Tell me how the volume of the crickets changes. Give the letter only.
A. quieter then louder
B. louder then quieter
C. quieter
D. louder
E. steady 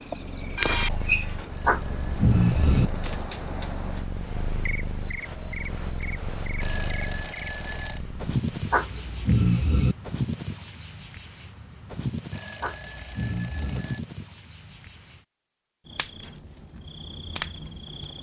C.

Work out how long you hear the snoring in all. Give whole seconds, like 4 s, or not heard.
4 s.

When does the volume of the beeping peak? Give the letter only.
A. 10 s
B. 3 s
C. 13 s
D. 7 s
D.